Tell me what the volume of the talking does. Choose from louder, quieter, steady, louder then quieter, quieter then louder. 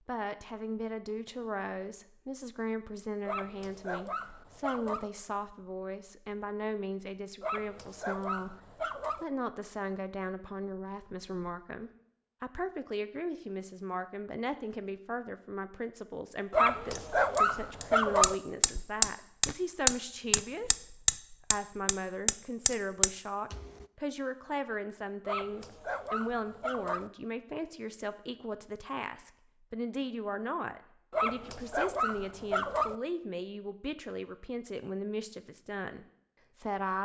steady.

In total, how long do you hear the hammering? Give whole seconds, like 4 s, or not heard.
7 s.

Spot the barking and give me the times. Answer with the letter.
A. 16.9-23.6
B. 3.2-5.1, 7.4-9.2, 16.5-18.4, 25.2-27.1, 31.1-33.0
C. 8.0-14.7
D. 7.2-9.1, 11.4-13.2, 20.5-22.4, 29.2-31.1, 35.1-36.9
B.